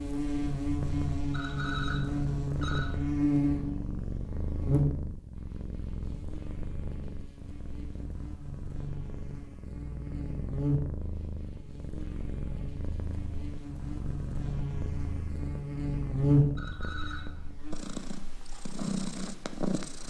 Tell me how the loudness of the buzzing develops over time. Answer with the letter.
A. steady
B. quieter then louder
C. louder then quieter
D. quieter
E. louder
B.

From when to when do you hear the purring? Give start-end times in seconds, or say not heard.
0.2-20.0.